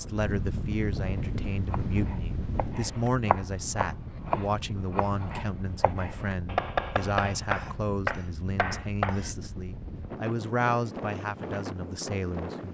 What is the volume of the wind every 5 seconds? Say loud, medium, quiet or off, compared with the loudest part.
loud, medium, loud.